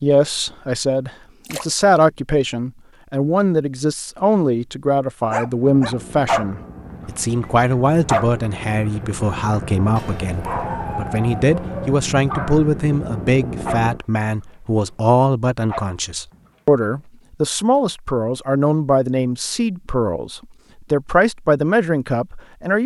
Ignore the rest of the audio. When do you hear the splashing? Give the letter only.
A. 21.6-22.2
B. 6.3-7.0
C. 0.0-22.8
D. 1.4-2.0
D.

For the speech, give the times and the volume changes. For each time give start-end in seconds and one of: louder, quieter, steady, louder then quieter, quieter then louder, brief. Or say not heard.
0.0-22.8 steady.